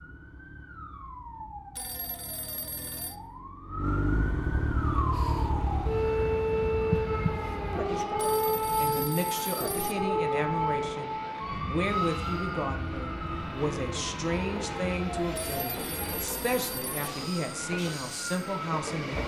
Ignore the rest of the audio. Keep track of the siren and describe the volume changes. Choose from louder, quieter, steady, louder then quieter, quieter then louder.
louder then quieter.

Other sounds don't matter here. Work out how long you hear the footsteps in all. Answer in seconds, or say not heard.
not heard.